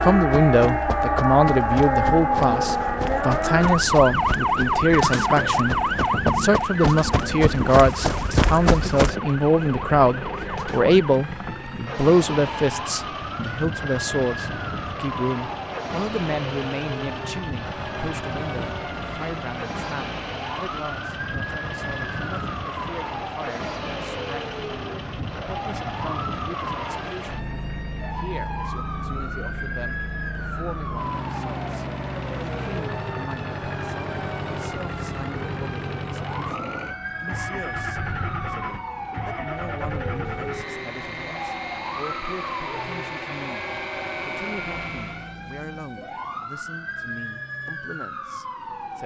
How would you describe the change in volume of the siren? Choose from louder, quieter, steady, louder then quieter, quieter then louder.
quieter.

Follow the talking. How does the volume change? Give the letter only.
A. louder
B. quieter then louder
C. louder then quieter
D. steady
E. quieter
E.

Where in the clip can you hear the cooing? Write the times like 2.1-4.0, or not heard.
not heard.